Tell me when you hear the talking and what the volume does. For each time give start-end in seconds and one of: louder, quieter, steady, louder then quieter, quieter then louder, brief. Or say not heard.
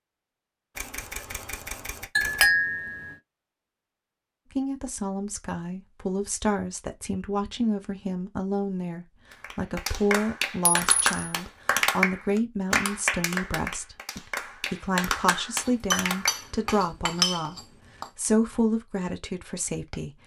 4.5-17.6 steady
18.1-20.1 brief.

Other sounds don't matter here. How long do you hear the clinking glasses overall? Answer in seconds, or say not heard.
4 s.